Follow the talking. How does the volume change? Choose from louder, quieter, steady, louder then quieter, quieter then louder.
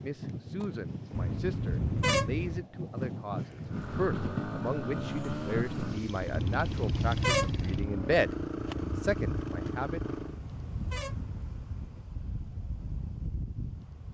louder.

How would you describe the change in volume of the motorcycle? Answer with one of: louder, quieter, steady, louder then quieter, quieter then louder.
steady.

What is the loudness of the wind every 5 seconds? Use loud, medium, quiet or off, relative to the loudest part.
loud, loud, medium.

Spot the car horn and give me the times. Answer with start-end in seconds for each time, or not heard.
1.1-2.6, 6.3-7.8, 10.2-12.1.